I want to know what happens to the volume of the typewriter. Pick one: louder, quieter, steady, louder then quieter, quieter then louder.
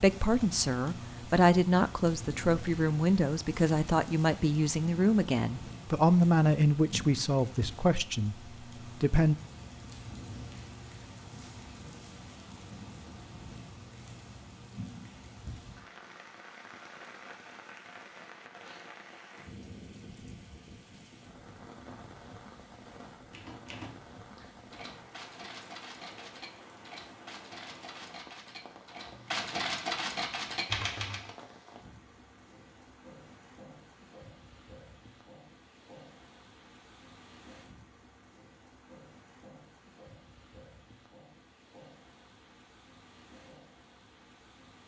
louder.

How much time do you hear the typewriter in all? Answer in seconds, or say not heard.
8 s.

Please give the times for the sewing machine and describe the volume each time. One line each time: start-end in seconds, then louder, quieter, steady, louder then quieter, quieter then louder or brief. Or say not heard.
not heard.